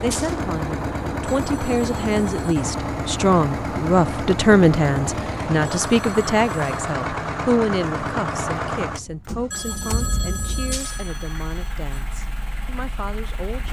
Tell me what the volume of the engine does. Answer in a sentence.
The volume of the engine goes down.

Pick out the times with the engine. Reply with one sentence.
You can hear the engine from 0.0 to 13.6 s.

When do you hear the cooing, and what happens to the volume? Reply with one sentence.
You can't hear the cooing here.